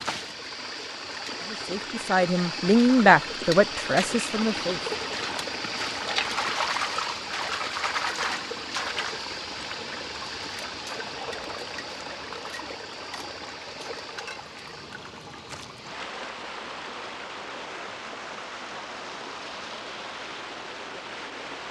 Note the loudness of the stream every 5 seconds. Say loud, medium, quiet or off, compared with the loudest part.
loud, loud, medium, medium, medium.